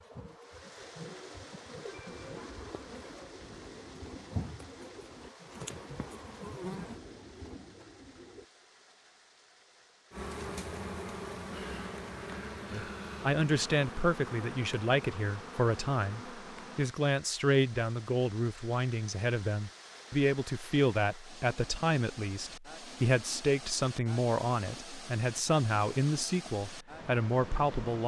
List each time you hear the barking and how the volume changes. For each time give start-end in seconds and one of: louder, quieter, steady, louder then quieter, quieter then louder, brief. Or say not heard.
not heard.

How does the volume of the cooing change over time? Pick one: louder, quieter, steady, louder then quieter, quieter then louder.
steady.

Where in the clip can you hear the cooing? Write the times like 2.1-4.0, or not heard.
0.6-8.4.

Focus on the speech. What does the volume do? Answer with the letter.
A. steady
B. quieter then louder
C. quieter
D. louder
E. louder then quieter
A.